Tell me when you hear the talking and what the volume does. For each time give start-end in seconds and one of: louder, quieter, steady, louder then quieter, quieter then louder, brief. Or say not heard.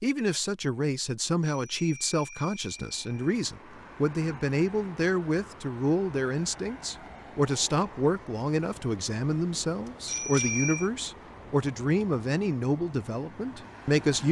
0.0-14.2 steady.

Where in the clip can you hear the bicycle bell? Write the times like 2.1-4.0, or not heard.
1.4-3.4, 10.1-10.9.